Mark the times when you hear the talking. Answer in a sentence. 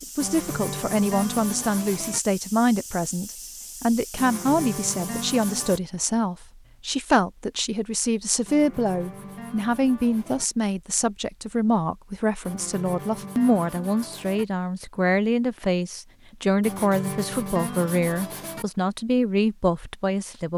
The talking can be heard from 0.0 to 20.5 s.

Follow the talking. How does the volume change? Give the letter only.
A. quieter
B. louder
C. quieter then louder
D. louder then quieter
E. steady
E.